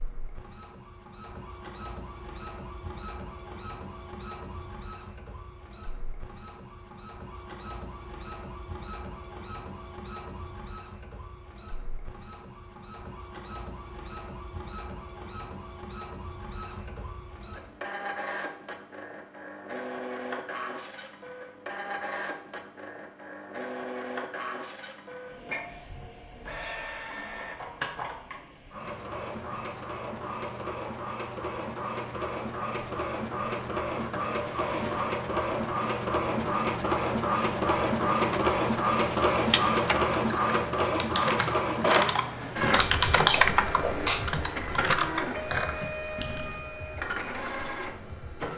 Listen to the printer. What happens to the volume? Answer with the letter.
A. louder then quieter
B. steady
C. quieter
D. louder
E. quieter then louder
D.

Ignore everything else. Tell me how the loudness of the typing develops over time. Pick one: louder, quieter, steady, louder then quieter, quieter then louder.
louder then quieter.